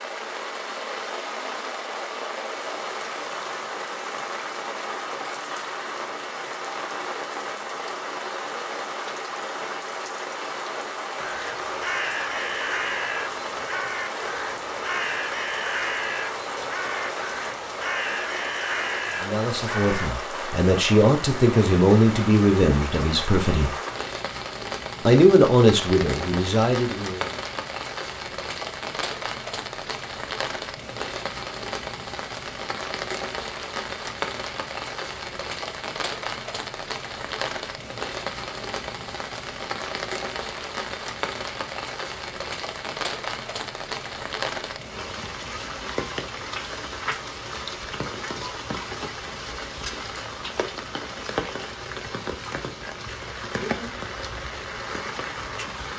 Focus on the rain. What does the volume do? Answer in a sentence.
The volume of the rain stays about the same.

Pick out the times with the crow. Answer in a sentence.
You can hear the crow from 11.2 to 20.1 s.